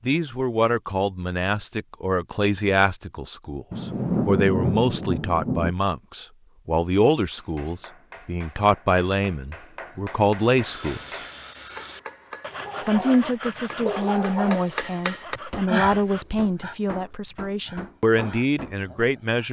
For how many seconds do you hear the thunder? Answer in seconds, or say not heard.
2 s.